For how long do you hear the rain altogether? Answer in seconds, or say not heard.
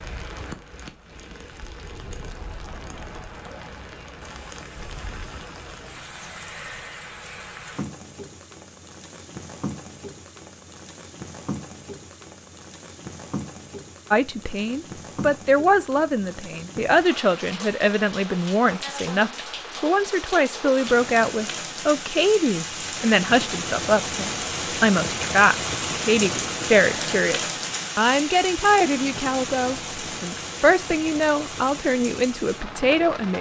33 s.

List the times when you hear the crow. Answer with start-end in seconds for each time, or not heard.
not heard.